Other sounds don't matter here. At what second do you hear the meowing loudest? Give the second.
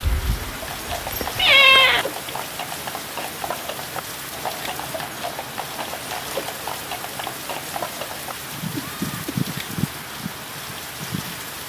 2 s.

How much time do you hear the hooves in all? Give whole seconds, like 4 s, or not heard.
11 s.